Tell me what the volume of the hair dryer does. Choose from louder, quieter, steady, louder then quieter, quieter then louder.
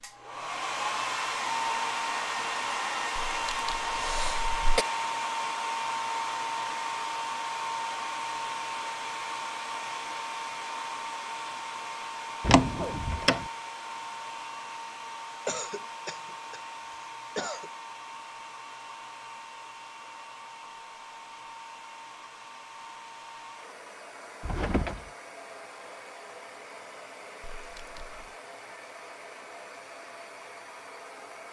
quieter.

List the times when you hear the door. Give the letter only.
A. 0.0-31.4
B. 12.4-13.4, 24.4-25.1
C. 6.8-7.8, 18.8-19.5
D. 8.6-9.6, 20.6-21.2
B.